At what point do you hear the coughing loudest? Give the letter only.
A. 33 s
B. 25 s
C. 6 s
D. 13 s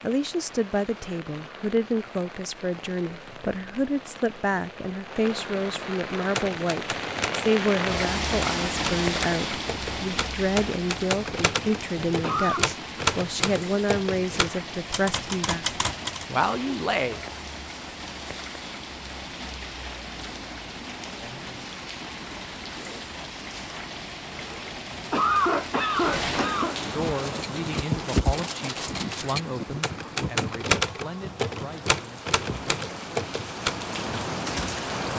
B.